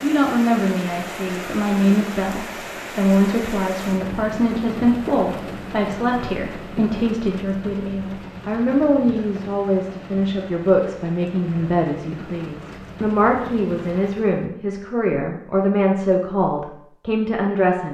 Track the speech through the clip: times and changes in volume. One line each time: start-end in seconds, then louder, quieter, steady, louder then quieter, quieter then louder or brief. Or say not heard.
0.0-17.9 steady.